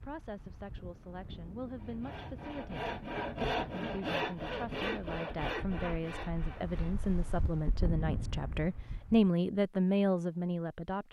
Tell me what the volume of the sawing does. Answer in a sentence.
The loudness of the sawing goes up, then down.